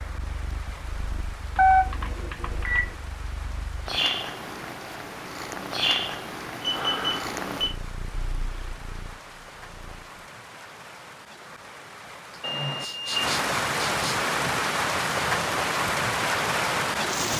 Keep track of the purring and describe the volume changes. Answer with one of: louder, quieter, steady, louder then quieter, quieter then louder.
louder then quieter.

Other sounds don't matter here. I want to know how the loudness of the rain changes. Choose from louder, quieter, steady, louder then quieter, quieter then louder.
louder.